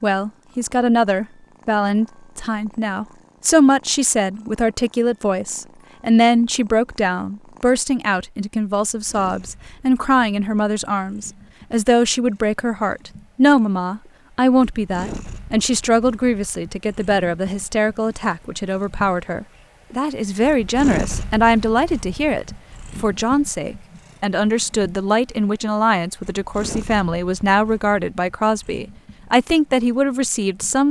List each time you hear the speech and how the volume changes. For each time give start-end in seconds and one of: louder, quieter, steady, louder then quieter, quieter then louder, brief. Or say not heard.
0.0-30.8 steady.